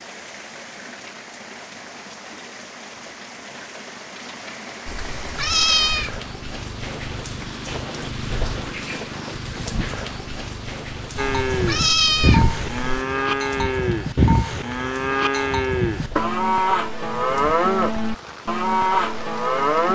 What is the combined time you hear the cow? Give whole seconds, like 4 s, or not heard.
9 s.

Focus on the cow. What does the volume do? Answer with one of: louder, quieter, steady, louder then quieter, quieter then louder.
steady.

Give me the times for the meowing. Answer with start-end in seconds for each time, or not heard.
4.8-6.2, 11.2-13.1.